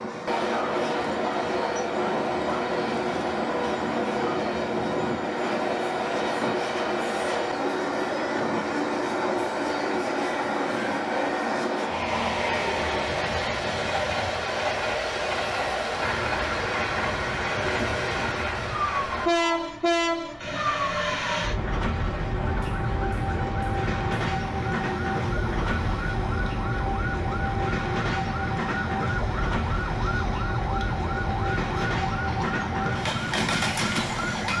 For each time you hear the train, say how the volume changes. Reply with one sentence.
The train can be heard from 0.0 to 34.5 s, at a steady volume.